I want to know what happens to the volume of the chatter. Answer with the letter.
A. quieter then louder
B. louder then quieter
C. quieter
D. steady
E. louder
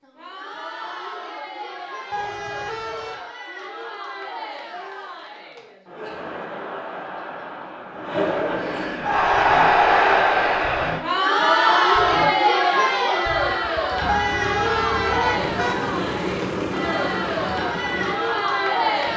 B.